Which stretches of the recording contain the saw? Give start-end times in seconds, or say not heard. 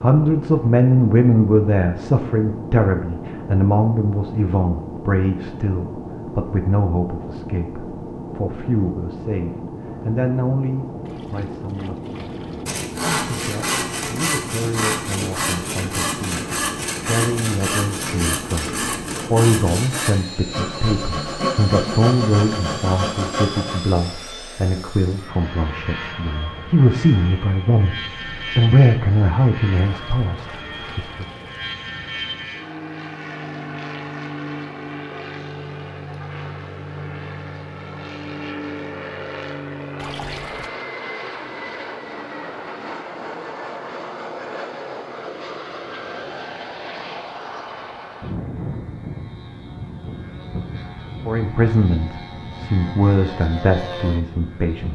12.7-23.8.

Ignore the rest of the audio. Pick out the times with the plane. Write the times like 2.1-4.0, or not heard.
0.0-54.8.